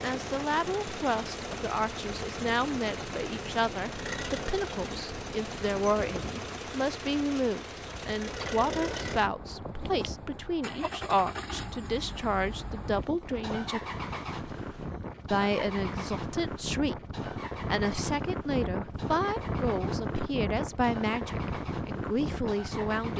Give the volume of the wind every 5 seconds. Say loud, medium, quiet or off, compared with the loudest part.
medium, medium, medium, loud, loud.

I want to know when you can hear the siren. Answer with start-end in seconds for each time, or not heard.
not heard.